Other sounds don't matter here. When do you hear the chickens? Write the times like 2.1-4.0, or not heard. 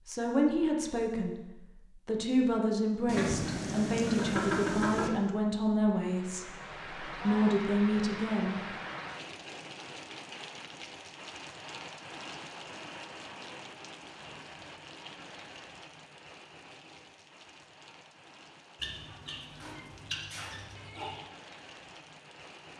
3.0-5.1, 18.8-21.2.